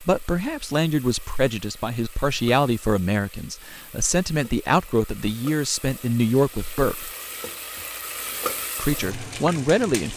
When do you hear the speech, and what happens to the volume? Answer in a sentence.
You can hear the speech from 0.0 to 7.1 s, at a steady volume; and briefly from 8.8 to 10.1 s.